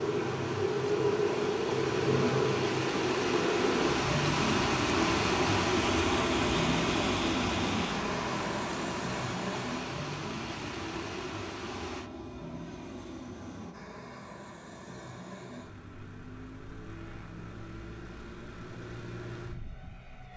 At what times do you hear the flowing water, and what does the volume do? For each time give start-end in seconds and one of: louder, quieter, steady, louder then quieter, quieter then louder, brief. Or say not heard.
0.0-12.1 louder then quieter.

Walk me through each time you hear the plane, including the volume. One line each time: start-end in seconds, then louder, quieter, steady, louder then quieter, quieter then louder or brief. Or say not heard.
0.0-20.3 quieter.